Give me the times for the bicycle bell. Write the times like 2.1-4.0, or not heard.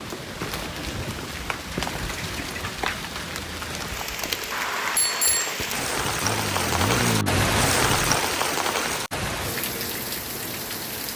4.5-5.5.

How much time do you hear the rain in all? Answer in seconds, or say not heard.
11 s.